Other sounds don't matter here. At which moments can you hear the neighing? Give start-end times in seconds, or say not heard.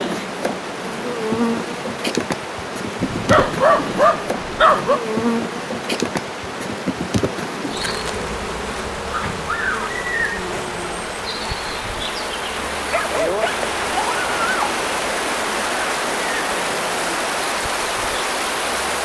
not heard.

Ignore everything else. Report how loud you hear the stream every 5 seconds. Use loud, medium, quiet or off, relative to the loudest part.
medium, medium, loud, loud.